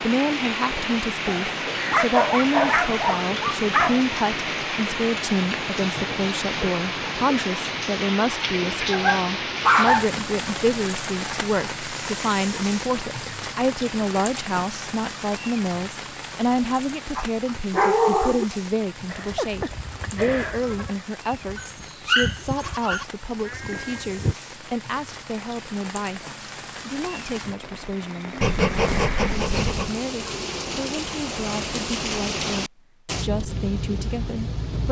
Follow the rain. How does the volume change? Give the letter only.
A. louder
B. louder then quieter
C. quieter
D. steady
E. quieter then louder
E.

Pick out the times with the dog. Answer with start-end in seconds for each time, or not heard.
1.2-4.0, 8.9-10.1, 17.1-18.4, 21.6-23.1, 28.4-29.9.